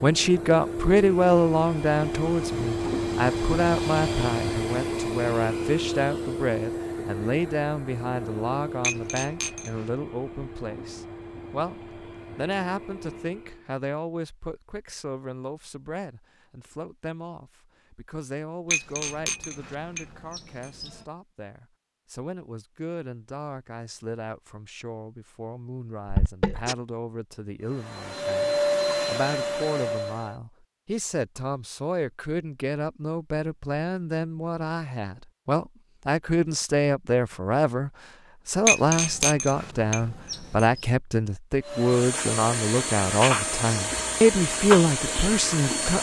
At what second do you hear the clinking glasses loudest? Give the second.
39 s.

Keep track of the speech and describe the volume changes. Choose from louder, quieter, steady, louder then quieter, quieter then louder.
quieter then louder.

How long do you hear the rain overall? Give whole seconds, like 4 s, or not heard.
not heard.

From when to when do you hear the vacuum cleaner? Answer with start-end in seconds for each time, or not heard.
0.0-13.7, 27.6-30.4, 41.6-45.9.